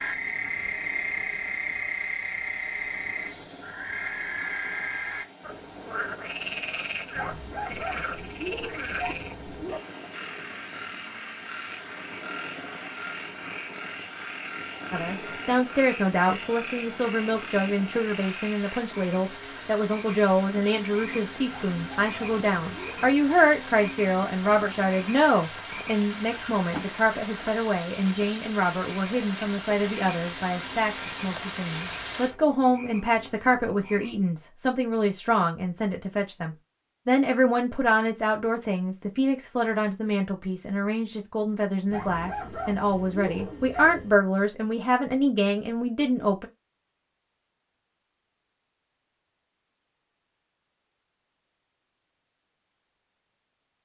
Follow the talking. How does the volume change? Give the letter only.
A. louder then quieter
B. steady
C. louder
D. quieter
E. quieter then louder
B.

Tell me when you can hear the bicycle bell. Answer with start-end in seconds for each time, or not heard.
not heard.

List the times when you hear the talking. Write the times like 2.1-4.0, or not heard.
14.9-46.5.